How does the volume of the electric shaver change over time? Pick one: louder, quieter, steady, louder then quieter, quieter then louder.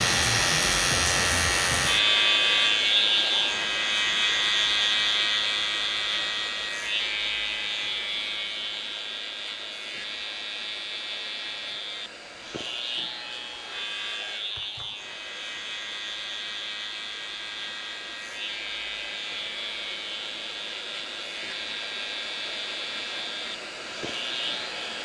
quieter.